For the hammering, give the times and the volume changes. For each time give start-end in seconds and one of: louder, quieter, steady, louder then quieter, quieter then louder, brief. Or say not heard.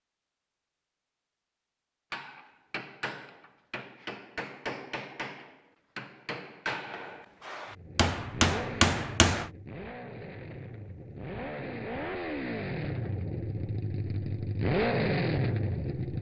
2.1-9.4 louder.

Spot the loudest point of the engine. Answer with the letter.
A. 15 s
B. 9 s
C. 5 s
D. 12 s
A.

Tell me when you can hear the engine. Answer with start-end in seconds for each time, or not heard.
7.7-16.1.